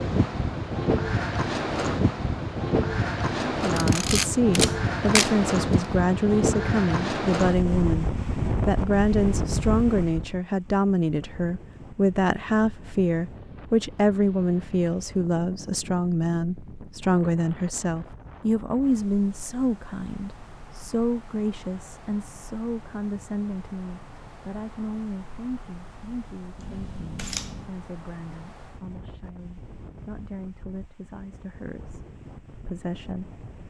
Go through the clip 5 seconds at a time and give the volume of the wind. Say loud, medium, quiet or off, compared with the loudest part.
loud, loud, quiet, quiet, quiet, quiet, quiet.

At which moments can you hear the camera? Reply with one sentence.
The camera can be heard from 3.6 to 5.8 s and from 26.6 to 27.7 s.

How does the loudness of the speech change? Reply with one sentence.
The volume of the speech goes down.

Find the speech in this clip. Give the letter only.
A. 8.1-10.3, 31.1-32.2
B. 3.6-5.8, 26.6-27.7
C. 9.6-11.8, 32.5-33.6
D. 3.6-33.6
D.